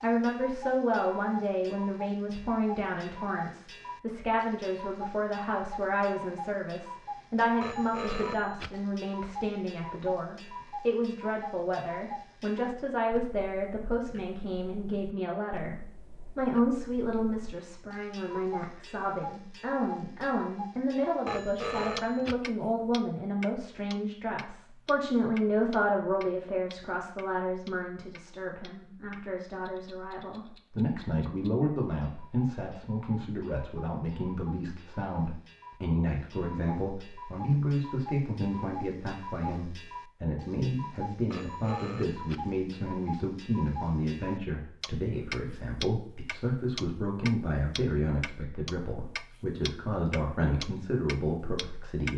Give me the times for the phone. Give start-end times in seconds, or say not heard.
7.6-8.8, 21.2-22.4, 41.3-42.5.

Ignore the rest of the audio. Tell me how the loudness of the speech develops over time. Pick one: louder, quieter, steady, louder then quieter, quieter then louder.
steady.